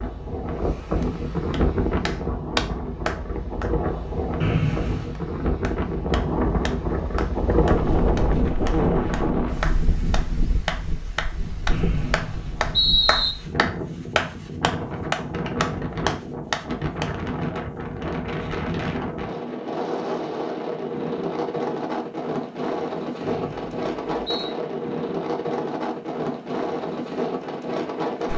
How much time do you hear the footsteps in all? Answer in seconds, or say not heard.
not heard.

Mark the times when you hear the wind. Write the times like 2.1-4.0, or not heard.
0.0-28.3.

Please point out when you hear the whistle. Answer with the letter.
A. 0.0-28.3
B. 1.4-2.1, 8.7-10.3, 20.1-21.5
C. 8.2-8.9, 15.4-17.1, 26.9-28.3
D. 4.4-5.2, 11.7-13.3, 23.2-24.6
D.